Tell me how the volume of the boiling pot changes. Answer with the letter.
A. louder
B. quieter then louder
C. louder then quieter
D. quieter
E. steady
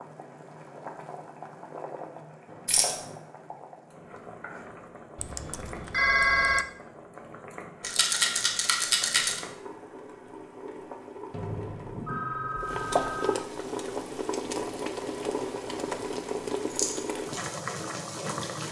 A.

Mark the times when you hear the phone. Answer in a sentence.
You can hear the phone from 5.2 to 6.7 s and from 11.3 to 13.3 s.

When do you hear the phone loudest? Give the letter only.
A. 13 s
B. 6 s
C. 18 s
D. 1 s
B.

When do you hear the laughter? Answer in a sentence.
The laughter can't be heard in this clip.